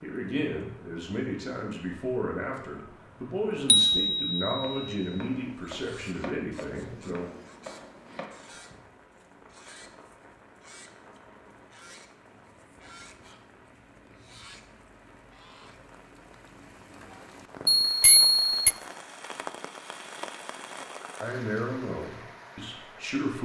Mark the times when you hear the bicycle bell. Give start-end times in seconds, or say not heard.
3.6-5.2, 17.7-18.7.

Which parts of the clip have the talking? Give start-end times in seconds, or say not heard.
0.0-7.3, 21.2-23.4.